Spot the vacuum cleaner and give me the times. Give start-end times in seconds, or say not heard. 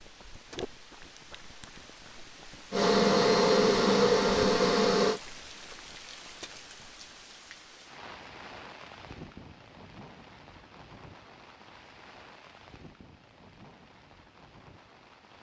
2.7-5.2.